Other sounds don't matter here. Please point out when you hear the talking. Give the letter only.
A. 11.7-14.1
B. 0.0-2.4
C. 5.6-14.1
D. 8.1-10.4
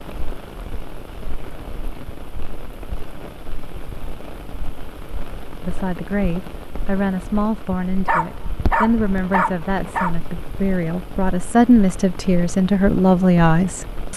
C.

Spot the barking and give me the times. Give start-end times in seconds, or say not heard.
8.1-10.4.